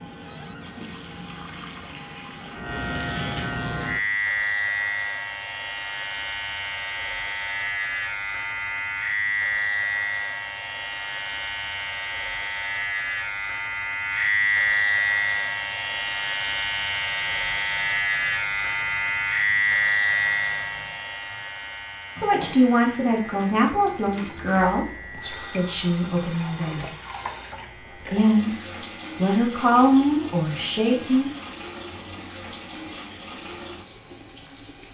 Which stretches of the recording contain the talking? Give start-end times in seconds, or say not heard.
22.2-26.9, 28.1-28.6, 29.1-31.3.